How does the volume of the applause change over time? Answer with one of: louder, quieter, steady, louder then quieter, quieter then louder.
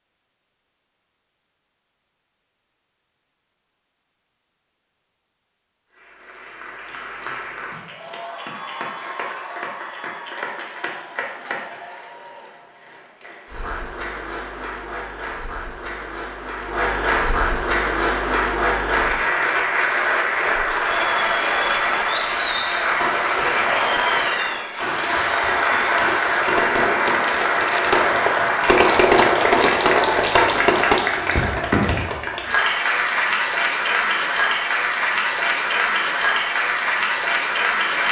louder.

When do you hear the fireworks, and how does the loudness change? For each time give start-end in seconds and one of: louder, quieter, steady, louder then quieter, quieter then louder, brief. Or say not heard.
22.9-31.1 louder.